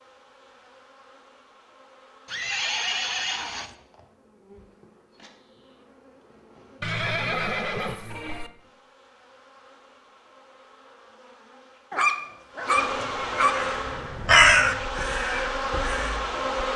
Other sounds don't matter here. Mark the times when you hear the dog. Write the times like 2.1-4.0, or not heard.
11.9-13.6.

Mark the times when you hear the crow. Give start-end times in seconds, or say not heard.
13.4-16.6.